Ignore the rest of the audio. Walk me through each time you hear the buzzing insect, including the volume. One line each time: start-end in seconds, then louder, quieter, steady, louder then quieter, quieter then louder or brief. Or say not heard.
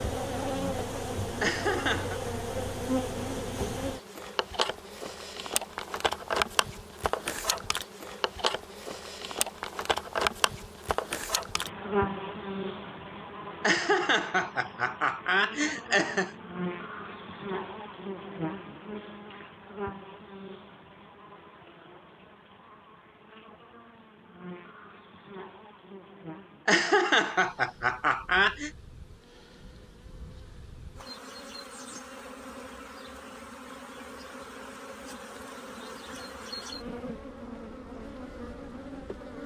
0.0-39.4 quieter then louder.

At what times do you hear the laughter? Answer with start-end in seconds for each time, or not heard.
1.4-2.2, 13.6-16.3, 26.6-28.7.